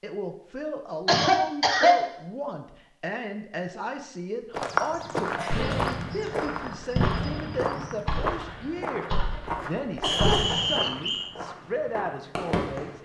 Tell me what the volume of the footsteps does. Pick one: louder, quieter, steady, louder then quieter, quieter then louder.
quieter.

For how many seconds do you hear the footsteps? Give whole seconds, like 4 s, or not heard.
8 s.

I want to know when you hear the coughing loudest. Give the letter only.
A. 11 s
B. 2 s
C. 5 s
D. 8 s
B.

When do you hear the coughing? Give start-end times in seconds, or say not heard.
1.1-2.0, 5.3-6.0, 10.0-10.6.